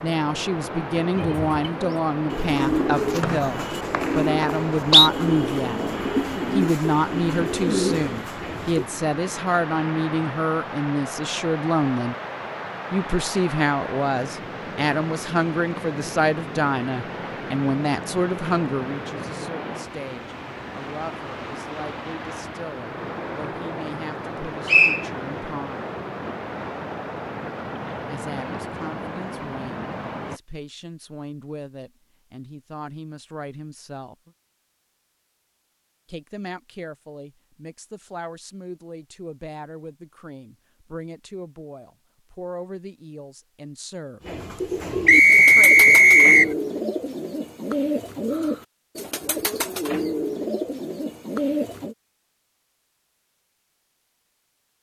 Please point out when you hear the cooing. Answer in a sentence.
The cooing can be heard from 1.1 to 8.9 s and from 44.2 to 52.0 s.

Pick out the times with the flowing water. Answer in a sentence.
You can hear the flowing water from 0.0 to 30.4 s.